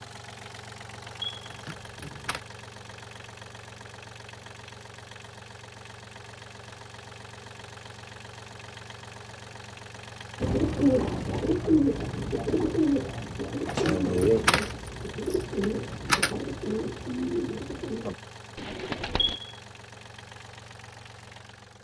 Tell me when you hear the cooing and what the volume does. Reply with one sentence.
You can hear the cooing from 10.4 to 19.4 s, getting quieter.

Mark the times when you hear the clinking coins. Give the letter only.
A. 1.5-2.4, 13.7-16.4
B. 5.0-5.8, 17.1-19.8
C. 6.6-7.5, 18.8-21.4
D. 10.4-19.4
A.